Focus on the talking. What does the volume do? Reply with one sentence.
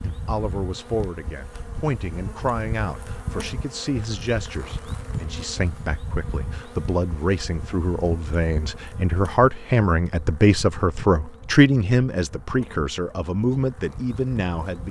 The volume of the talking goes up.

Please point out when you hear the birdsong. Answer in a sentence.
The birdsong can't be heard in this clip.